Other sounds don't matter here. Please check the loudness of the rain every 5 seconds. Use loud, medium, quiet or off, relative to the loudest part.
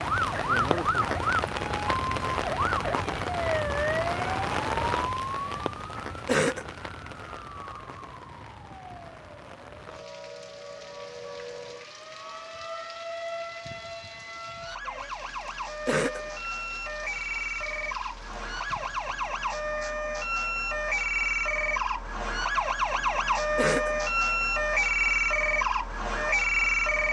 loud, medium, quiet, quiet, off, off.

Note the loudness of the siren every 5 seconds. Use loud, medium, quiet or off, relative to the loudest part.
loud, quiet, quiet, medium, loud, loud.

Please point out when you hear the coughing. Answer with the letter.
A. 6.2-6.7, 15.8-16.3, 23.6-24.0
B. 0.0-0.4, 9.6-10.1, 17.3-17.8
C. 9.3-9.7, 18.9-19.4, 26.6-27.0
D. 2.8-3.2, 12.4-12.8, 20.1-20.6
A.